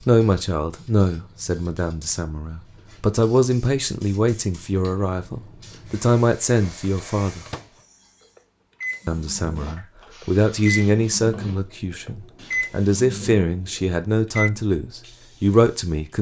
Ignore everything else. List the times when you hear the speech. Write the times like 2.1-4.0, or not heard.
0.1-7.5, 9.1-16.1.